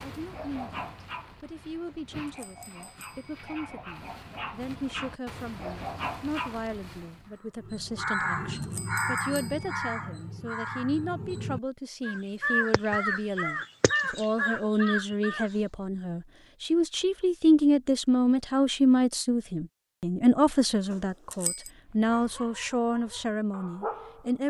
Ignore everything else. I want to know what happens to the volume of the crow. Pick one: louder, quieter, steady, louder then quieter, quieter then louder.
quieter then louder.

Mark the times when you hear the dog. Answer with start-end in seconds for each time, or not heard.
0.0-7.3, 21.8-24.4.